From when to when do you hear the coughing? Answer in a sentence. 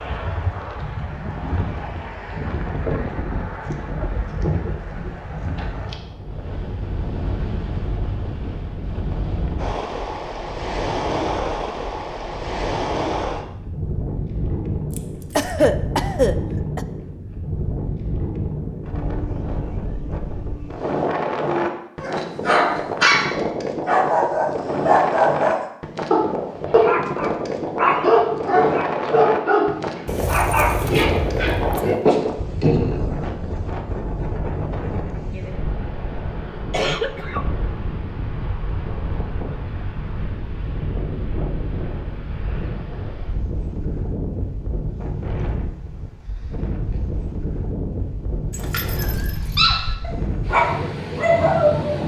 You can hear the coughing from 15.3 to 16.9 s and from 36.7 to 37.5 s.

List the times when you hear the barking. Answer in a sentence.
You can hear the barking from 21.4 to 33.0 s and from 49.0 to 52.0 s.